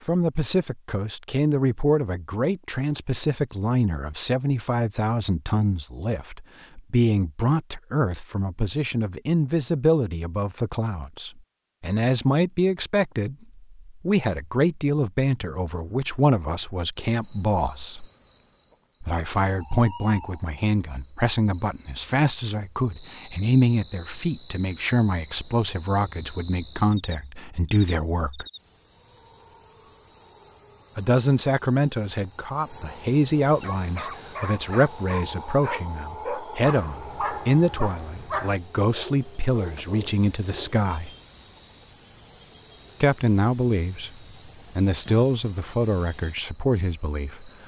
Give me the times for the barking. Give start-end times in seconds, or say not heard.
33.6-41.2.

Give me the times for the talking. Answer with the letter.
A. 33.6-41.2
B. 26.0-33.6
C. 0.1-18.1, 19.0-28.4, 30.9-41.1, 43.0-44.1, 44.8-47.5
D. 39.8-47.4
C.